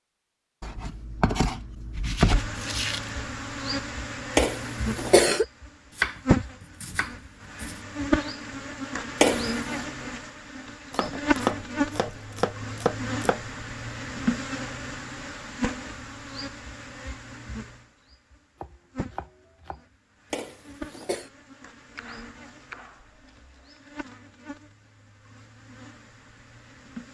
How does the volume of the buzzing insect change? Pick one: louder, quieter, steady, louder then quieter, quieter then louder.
quieter.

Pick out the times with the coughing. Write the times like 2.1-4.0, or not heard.
4.3-5.5, 9.2-9.6, 20.3-21.3.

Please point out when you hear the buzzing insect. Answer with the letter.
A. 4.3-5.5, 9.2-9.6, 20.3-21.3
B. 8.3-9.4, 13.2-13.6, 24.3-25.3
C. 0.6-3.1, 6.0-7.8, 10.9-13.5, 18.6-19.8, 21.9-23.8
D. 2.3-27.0
D.